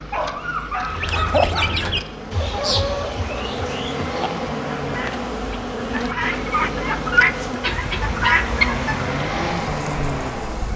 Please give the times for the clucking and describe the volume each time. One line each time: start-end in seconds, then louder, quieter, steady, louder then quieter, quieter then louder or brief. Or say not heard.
0.8-9.2 quieter then louder.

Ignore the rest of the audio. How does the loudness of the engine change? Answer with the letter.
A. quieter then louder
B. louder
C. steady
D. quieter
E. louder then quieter
B.